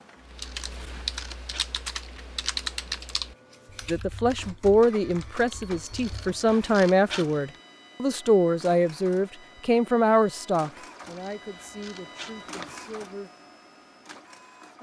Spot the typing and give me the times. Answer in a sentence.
You can hear the typing from 0.2 to 6.3 s.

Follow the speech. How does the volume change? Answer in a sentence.
The loudness of the speech goes down.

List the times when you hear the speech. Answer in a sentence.
You can hear the speech from 3.9 to 13.3 s.